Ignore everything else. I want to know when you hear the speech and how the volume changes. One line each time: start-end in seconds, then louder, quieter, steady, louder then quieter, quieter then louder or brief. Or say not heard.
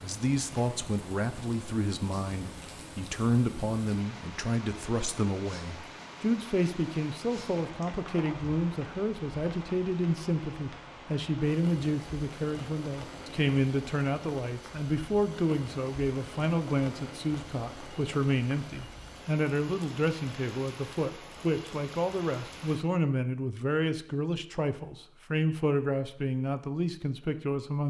0.0-27.8 steady.